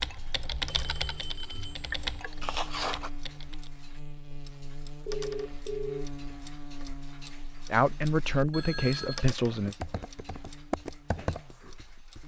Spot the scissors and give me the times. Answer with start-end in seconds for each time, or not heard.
2.4-3.1.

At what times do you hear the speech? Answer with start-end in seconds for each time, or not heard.
7.7-9.8.